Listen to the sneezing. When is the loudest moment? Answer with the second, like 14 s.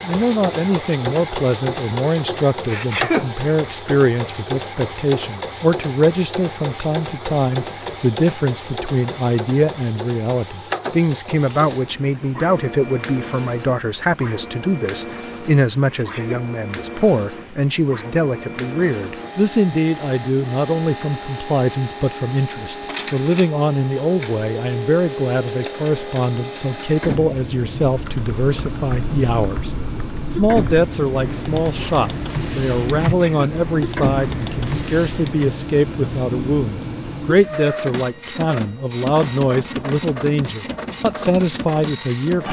3 s.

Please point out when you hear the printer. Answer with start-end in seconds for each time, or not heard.
0.0-42.4.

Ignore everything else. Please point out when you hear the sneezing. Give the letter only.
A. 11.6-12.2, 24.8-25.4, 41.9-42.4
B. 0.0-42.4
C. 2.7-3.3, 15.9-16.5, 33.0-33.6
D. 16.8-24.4
C.